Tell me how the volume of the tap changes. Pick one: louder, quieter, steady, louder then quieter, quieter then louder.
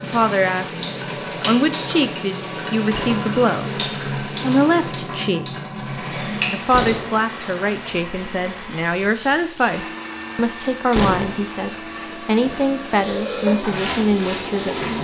quieter then louder.